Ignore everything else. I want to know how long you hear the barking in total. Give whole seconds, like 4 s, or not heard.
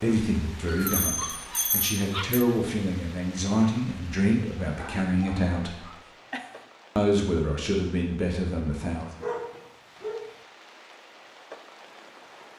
5 s.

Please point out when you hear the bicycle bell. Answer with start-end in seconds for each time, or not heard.
0.8-2.5.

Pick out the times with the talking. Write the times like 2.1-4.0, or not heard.
0.0-5.8, 7.0-9.1.